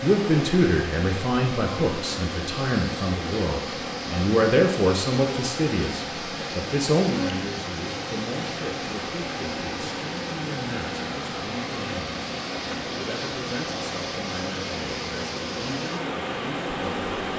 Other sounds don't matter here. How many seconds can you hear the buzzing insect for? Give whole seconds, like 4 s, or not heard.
17 s.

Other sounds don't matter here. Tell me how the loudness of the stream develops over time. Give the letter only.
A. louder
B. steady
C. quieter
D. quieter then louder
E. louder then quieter
B.